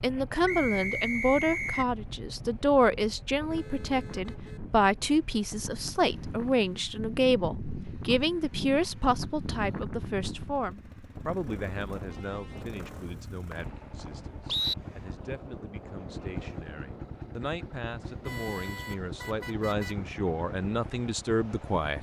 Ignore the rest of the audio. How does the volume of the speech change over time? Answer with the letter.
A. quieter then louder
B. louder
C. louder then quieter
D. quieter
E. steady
A.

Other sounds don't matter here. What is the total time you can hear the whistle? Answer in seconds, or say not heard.
3 s.